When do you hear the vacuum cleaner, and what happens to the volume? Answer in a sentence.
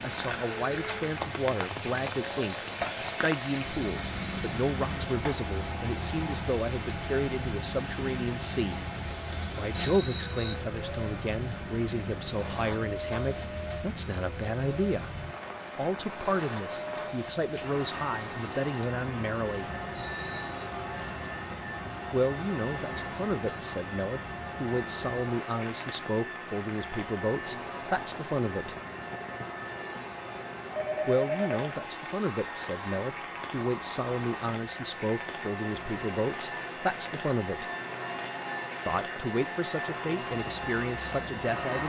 You can hear the vacuum cleaner from 0.0 to 41.8 s, at a steady volume.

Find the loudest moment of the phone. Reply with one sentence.
The volume of the phone peaks at 31 seconds.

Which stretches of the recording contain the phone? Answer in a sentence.
The phone can be heard from 9.7 to 10.6 s, from 19.9 to 20.6 s and from 30.7 to 31.6 s.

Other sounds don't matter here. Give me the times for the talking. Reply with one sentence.
The talking can be heard from 0.0 to 8.8 s, from 9.6 to 15.1 s, from 15.8 to 19.7 s, from 22.1 to 28.8 s, from 31.1 to 37.7 s and from 38.9 to 41.8 s.